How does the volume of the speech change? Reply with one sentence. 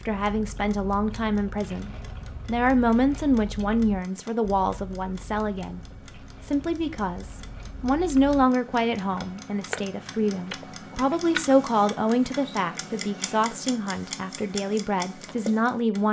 The loudness of the speech stays about the same.